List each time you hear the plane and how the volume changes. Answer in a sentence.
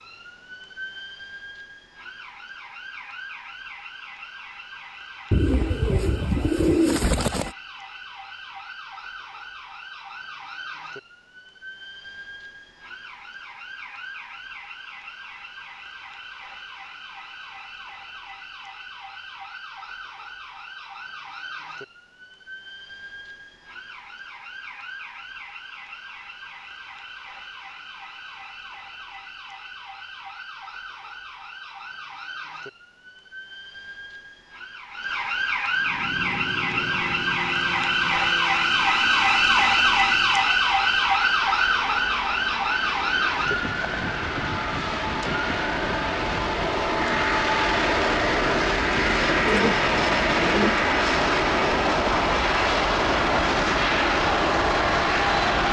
You can hear the plane from 35.8 to 55.6 s, getting louder.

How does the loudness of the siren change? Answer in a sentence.
The volume of the siren goes up.